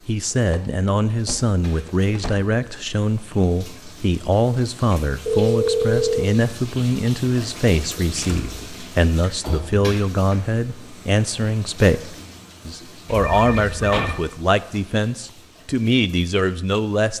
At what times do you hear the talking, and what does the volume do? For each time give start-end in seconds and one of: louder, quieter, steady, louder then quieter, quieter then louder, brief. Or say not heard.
0.1-17.1 steady.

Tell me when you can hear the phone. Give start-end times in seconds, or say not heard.
5.2-6.3, 13.1-14.2.